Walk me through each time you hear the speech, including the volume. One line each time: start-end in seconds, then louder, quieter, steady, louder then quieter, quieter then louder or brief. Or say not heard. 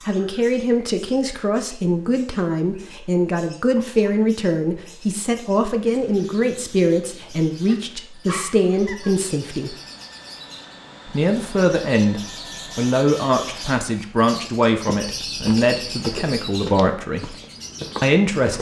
0.1-9.8 steady
11.1-17.4 steady
18.0-18.5 brief.